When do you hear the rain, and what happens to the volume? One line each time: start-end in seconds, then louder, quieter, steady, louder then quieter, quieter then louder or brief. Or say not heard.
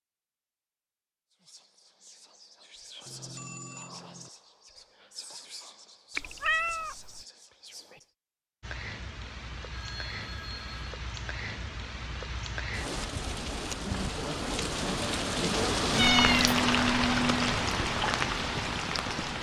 8.6-19.3 louder.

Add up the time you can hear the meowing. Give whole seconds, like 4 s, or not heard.
2 s.